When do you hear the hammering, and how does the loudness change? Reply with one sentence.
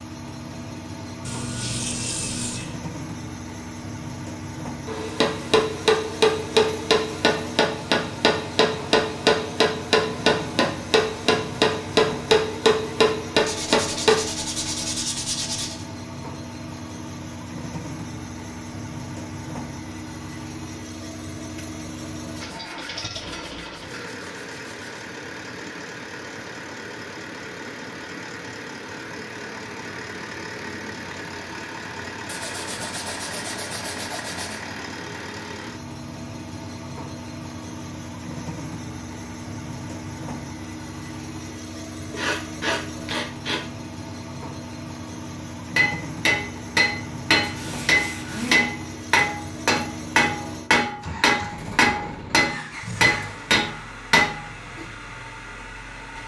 You can hear the hammering from 4.8 to 14.2 s, at a steady volume; and from 45.8 to 55.0 s, at a steady volume.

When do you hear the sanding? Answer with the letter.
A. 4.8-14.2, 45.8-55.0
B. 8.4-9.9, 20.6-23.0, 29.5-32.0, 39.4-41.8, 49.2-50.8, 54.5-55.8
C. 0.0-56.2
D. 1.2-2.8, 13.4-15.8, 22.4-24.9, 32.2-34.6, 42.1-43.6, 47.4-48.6
D.